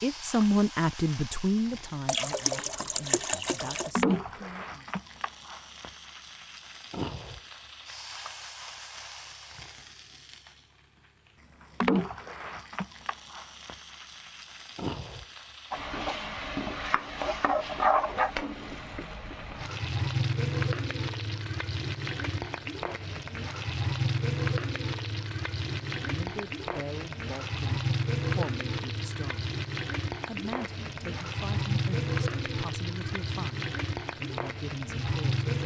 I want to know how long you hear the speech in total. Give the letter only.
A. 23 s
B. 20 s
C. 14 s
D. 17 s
C.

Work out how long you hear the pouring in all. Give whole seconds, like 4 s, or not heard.
2 s.